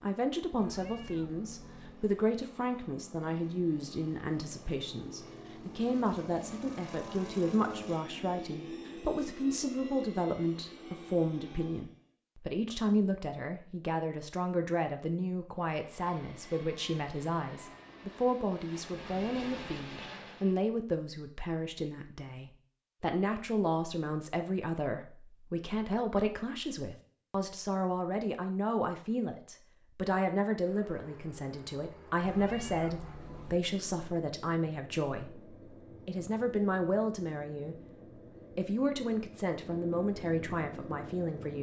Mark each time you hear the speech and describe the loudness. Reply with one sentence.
The speech can be heard from 0.0 to 37.8 s, at a steady volume; and briefly from 38.5 to 41.5 s.